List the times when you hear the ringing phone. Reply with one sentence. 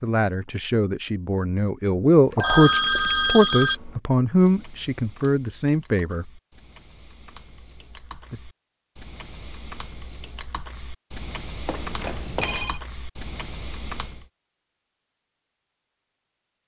The ringing phone can be heard from 2.4 to 3.8 s and from 11.7 to 12.8 s.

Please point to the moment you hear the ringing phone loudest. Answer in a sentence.
The volume of the ringing phone peaks at 3 seconds.